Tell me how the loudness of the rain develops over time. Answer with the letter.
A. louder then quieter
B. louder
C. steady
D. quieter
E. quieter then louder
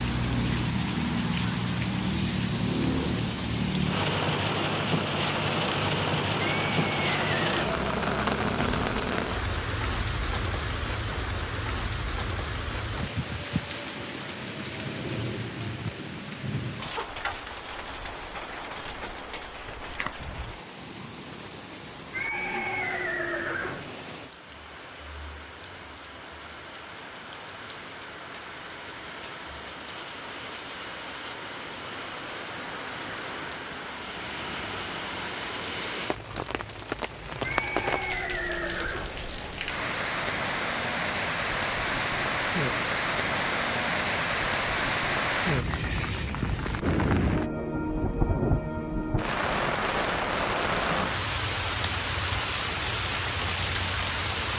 E.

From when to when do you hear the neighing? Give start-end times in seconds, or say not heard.
6.6-7.5, 22.1-23.9, 37.4-39.2.